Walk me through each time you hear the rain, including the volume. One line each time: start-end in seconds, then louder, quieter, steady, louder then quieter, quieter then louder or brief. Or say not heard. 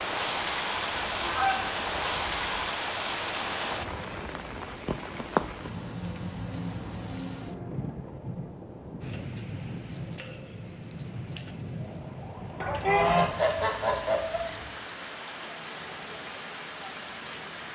0.0-17.7 quieter.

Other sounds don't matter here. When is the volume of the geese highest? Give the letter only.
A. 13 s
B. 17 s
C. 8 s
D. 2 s
A.